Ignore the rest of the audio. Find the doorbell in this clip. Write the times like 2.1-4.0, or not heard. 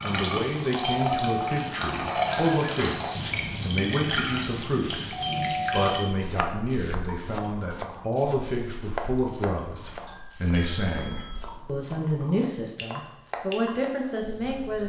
0.8-2.8, 5.1-6.0, 10.1-11.6.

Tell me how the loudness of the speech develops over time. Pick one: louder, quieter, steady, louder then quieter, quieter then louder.
steady.